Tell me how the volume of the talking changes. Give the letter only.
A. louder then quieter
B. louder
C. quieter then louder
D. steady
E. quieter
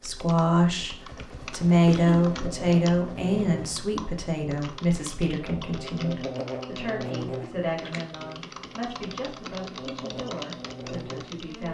E.